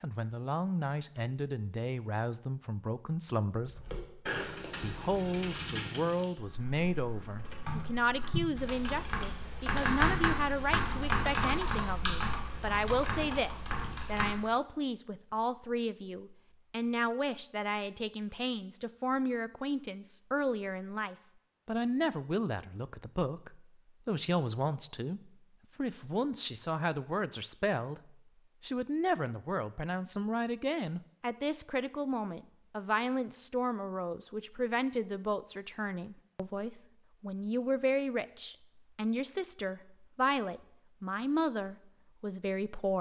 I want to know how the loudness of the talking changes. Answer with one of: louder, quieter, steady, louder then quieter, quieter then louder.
steady.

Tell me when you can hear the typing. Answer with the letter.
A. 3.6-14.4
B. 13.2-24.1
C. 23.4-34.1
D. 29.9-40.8
A.